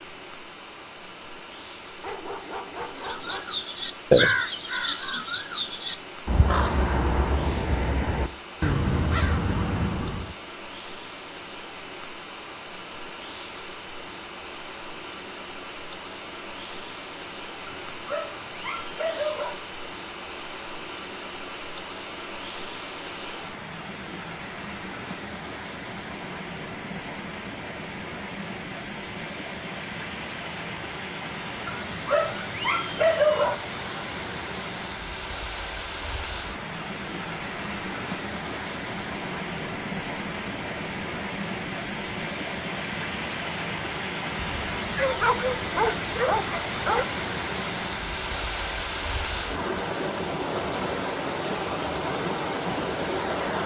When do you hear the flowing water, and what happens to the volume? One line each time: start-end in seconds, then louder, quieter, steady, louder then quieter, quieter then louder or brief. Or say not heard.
0.0-53.6 louder.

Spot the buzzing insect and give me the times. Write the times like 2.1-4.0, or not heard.
not heard.